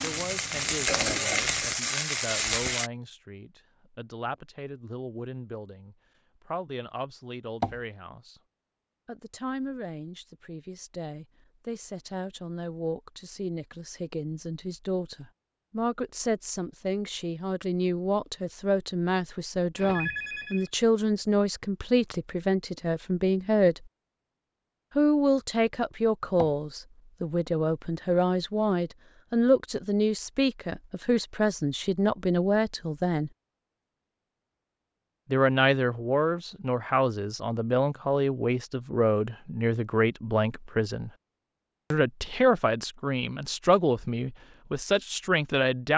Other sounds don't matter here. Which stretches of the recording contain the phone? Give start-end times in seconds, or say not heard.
19.8-20.7.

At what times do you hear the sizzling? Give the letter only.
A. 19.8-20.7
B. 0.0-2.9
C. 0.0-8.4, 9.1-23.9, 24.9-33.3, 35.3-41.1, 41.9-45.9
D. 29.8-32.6
B.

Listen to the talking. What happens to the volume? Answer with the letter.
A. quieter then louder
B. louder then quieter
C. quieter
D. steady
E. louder
E.